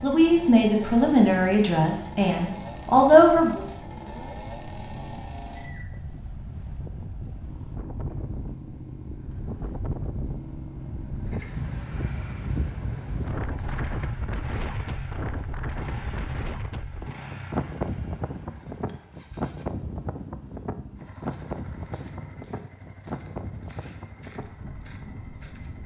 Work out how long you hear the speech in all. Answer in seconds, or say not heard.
4 s.